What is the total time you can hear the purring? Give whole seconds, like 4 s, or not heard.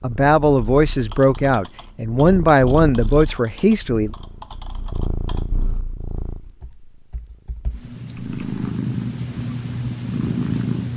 11 s.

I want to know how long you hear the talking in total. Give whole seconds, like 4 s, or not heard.
4 s.